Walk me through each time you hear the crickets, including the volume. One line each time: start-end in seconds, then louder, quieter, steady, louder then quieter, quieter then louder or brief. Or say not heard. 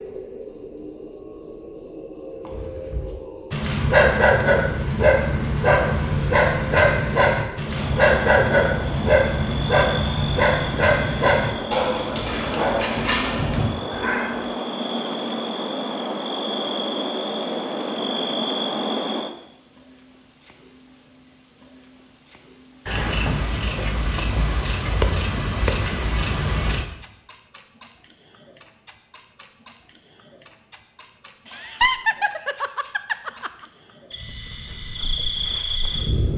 0.0-36.3 louder.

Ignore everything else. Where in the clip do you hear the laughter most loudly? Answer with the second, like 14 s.
32 s.